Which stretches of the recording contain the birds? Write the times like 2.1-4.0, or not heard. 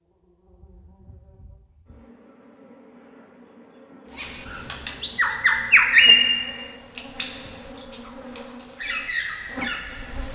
4.2-10.2.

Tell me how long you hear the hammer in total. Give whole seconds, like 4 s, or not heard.
not heard.